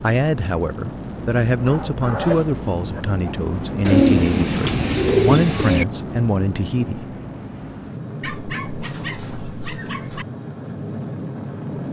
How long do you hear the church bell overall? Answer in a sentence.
The church bell can't be heard in this clip.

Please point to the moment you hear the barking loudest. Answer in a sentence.
The volume of the barking peaks at 2 seconds.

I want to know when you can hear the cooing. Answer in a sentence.
You can hear the cooing from 3.9 to 5.8 s.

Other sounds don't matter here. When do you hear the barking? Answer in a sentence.
You can hear the barking from 1.6 to 3.4 s and from 8.2 to 10.2 s.